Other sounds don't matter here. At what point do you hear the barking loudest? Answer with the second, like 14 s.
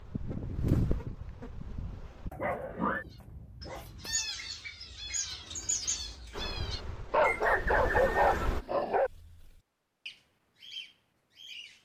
8 s.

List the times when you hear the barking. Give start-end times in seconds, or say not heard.
2.3-4.2, 7.1-9.1.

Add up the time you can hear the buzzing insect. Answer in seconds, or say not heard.
5 s.